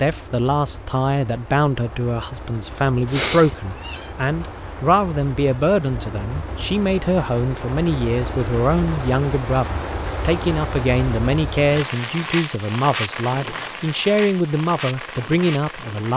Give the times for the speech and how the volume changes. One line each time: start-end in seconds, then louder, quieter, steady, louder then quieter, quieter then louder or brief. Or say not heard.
0.0-16.1 steady.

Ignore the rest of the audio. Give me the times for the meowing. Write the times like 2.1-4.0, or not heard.
3.0-4.1.